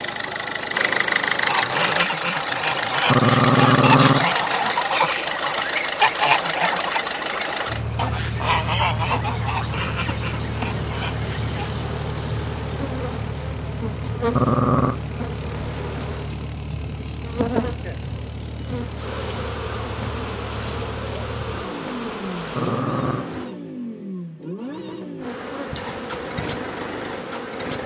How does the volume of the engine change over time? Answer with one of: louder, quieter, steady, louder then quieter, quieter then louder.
quieter.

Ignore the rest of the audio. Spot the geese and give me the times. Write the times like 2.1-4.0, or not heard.
1.4-11.7.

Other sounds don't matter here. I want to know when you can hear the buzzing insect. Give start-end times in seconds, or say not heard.
7.0-23.5, 25.1-27.8.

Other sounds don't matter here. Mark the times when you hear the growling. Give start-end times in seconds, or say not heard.
3.0-4.2, 14.3-15.0, 22.6-23.3.